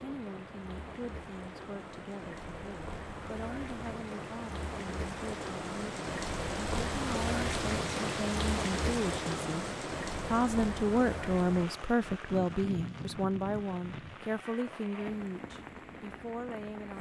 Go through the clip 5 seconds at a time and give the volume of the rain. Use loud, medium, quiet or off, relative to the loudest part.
medium, loud, medium, medium.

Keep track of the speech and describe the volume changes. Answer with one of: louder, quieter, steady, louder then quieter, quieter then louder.
louder then quieter.